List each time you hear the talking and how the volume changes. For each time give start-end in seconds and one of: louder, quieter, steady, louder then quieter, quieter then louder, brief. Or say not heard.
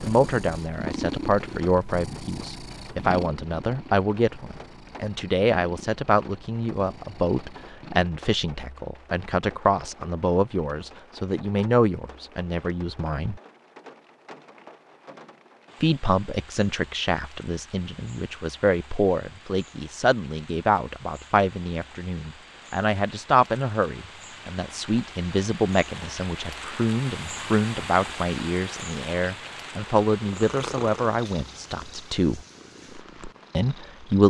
0.0-13.4 steady
15.8-32.4 steady
33.5-34.2 brief.